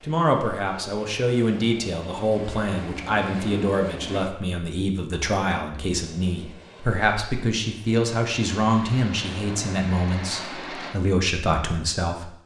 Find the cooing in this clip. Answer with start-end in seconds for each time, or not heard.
not heard.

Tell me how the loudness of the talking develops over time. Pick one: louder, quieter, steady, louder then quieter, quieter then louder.
steady.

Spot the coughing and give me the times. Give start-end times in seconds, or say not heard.
not heard.